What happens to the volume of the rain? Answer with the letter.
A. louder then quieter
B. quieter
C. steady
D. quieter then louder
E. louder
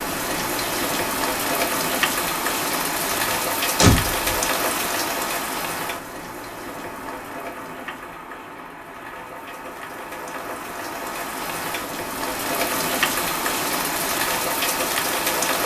D.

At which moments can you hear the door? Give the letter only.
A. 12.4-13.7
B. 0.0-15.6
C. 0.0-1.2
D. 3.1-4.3
D.